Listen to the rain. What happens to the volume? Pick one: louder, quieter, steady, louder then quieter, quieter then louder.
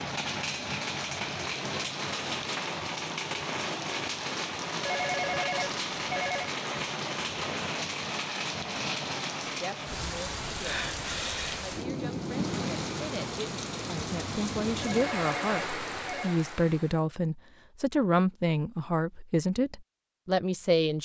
steady.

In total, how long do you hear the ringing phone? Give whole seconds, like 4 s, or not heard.
3 s.